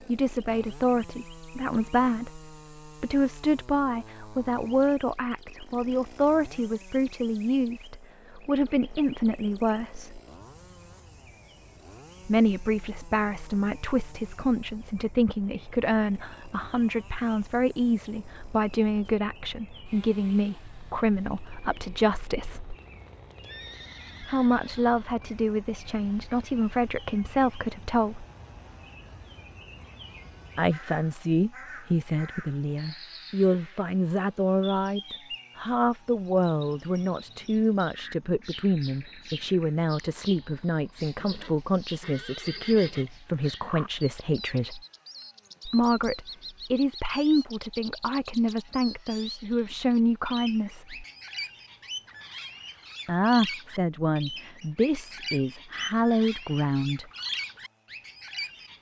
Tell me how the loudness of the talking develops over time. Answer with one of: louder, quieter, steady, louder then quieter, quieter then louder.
steady.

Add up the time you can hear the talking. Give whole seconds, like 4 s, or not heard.
48 s.